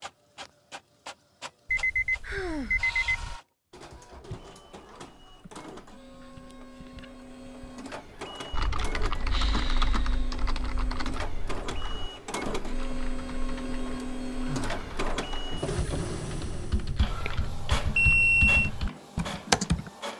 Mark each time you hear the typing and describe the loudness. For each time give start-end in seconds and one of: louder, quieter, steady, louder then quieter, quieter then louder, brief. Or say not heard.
8.5-19.9 quieter then louder.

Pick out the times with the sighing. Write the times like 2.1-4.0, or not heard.
2.2-2.9, 9.3-10.3, 14.4-14.8.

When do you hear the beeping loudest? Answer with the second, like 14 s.
18 s.